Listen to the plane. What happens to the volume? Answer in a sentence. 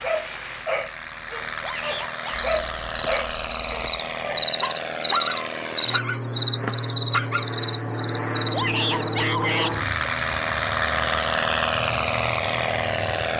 The loudness of the plane goes up.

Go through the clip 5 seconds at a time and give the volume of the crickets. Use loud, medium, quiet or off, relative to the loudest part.
loud, loud, medium.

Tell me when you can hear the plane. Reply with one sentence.
The plane can be heard from 0.0 to 13.3 s.